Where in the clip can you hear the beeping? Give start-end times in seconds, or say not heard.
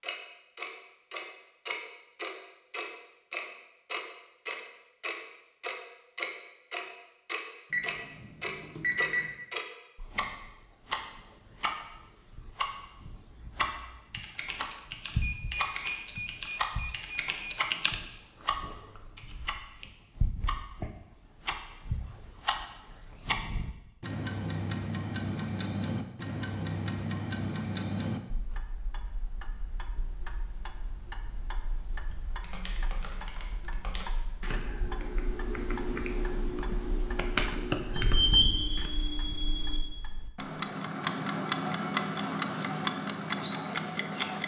7.7-9.3, 15.0-17.6, 37.9-39.8.